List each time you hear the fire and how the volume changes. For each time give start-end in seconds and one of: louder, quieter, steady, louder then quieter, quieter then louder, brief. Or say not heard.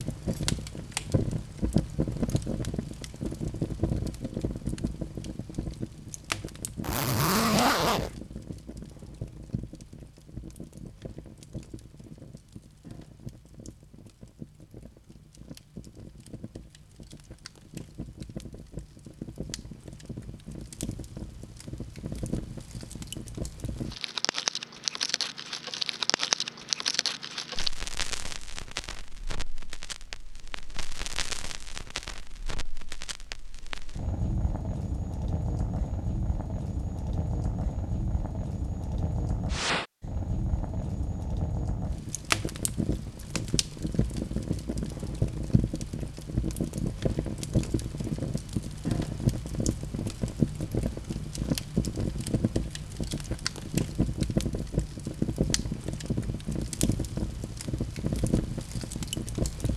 0.0-59.7 quieter then louder.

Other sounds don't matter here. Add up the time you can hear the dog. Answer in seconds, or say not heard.
not heard.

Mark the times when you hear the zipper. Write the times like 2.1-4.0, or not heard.
6.8-8.2.